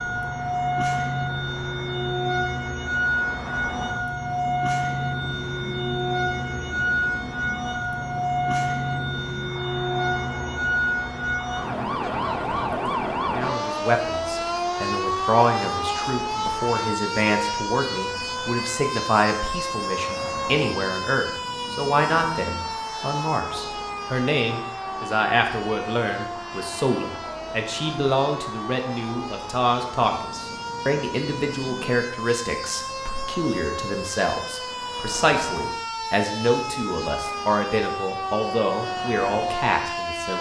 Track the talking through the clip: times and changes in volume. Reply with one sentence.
The talking can be heard from 13.3 to 40.3 s, at a steady volume.